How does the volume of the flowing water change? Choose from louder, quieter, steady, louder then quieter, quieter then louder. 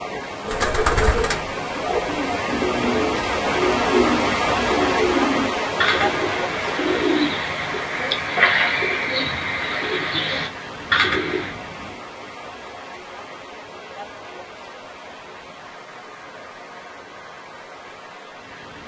quieter.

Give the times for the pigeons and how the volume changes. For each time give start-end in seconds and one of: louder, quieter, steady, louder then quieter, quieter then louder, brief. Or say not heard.
0.4-11.6 steady.